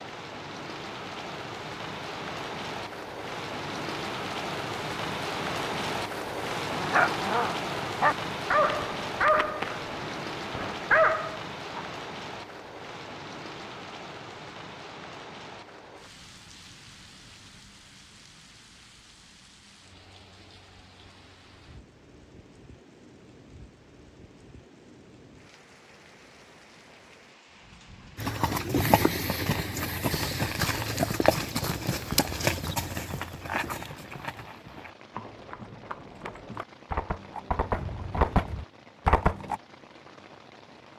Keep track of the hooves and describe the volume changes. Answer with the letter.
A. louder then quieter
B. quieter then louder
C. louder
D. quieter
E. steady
B.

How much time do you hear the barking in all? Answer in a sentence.
You can hear the barking for 5 seconds altogether.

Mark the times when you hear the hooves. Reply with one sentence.
The hooves can be heard from 28.1 to 39.6 s.